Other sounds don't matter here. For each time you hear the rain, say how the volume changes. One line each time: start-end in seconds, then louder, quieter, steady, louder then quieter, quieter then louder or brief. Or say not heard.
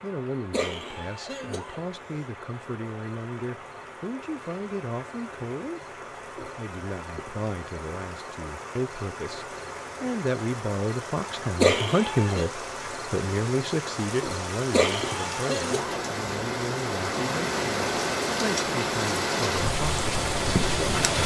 0.0-21.2 louder.